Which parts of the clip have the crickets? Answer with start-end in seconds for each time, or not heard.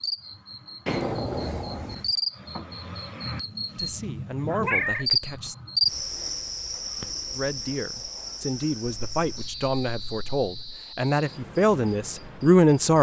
0.0-12.9.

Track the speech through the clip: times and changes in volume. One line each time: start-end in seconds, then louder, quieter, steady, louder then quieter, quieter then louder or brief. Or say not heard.
3.8-5.5 brief
7.3-12.9 louder.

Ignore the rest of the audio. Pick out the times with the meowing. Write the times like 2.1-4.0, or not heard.
0.8-2.1, 4.6-5.0, 8.9-10.8.